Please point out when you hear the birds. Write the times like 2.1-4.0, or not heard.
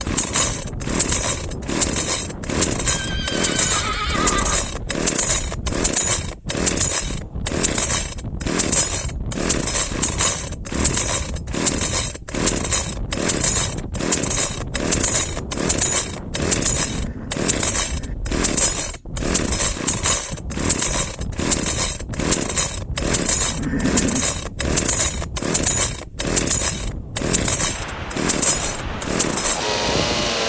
not heard.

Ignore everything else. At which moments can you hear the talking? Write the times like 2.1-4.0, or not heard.
not heard.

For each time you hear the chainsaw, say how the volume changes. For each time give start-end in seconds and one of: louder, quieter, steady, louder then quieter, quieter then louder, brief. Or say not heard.
0.0-30.4 steady.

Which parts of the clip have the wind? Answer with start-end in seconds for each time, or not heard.
0.0-30.4.